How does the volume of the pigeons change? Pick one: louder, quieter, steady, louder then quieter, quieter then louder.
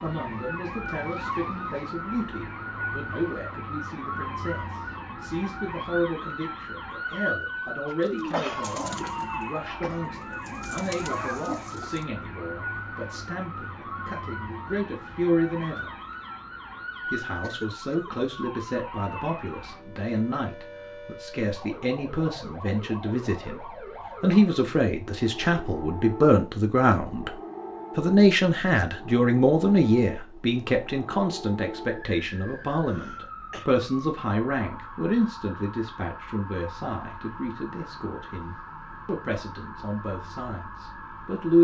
quieter then louder.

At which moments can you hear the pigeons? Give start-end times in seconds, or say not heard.
8.0-12.1.